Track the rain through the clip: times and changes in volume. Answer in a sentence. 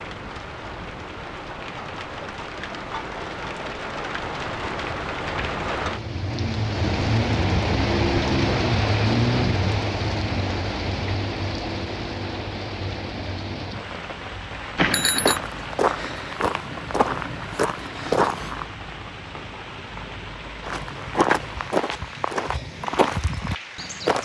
You can hear the rain from 0.0 to 24.2 s, getting louder then quieter.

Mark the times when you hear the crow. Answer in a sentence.
You can't hear the crow here.